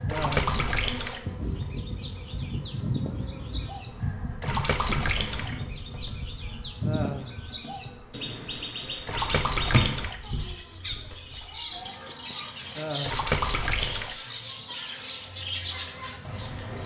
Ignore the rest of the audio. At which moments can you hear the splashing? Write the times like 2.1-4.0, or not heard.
0.1-1.2, 4.4-5.5, 9.1-10.2, 13.0-14.2.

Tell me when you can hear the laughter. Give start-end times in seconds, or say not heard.
0.1-0.5, 6.8-7.4, 12.8-13.3.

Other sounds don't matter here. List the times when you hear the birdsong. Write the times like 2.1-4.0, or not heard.
0.0-16.8.